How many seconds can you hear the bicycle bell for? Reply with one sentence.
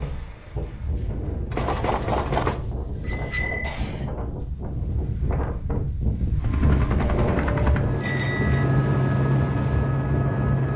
The bicycle bell can be heard for 3 seconds in total.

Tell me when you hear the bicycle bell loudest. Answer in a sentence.
The loudest moment of the bicycle bell is at 8 seconds.